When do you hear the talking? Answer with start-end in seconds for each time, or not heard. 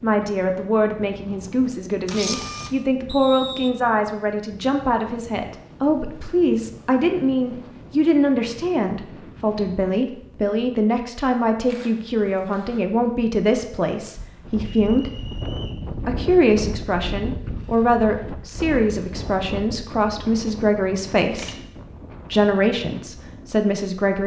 0.0-15.1, 16.1-21.6, 22.3-24.2.